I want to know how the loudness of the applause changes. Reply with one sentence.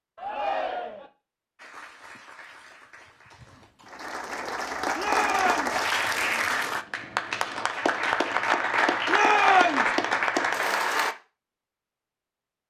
The loudness of the applause goes up.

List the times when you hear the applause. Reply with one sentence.
You can hear the applause from 1.6 to 11.2 s.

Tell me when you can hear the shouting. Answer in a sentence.
You can hear the shouting from 0.1 to 1.1 s, from 5.0 to 5.8 s and from 9.1 to 9.9 s.